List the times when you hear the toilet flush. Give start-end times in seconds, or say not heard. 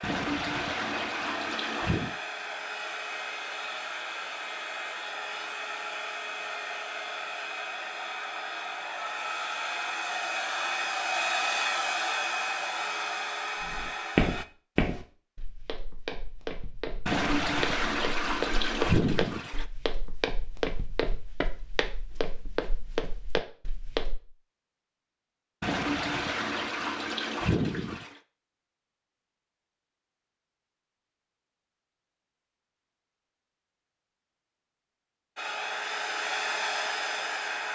0.0-2.1, 17.1-19.6, 25.6-28.1.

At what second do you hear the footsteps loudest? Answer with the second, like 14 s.
14 s.